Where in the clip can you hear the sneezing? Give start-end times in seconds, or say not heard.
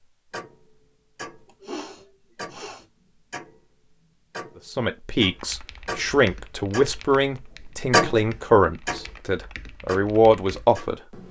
1.4-2.9.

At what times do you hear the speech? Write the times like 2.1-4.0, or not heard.
4.7-10.9.